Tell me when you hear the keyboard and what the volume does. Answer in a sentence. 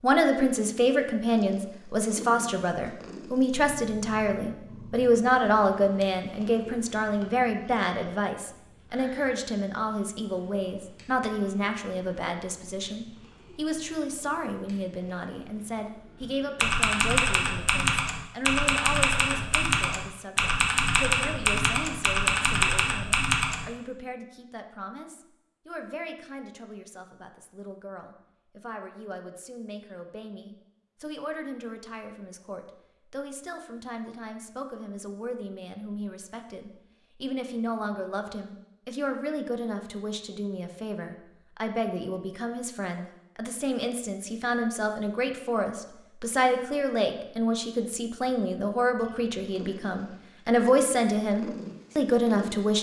The keyboard can be heard from 16.2 to 23.6 s, at a steady volume.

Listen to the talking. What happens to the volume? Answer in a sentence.
The loudness of the talking goes down, then up.